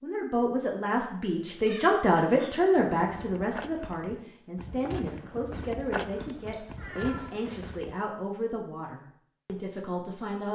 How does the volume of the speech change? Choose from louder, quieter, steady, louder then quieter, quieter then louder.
quieter.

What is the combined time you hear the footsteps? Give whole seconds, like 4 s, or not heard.
5 s.